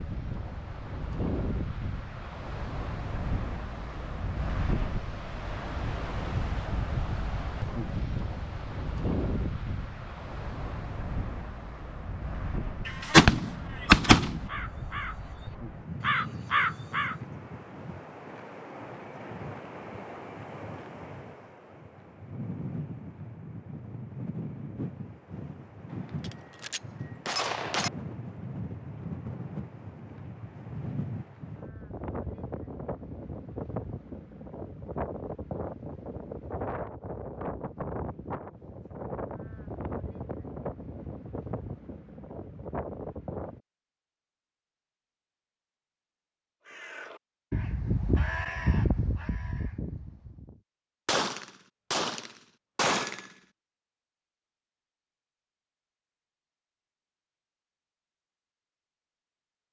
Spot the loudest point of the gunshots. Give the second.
13 s.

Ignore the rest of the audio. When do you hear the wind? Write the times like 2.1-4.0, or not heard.
0.0-43.6.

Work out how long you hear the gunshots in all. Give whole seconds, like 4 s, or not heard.
6 s.